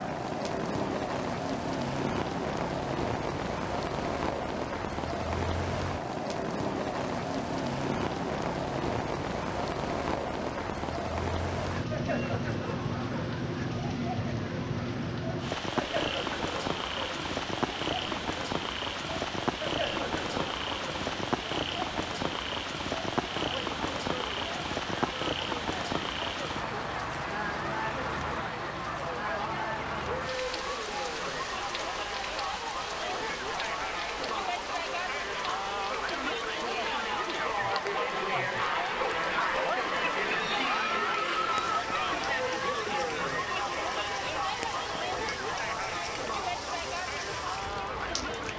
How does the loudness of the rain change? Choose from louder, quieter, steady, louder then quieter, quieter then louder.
quieter.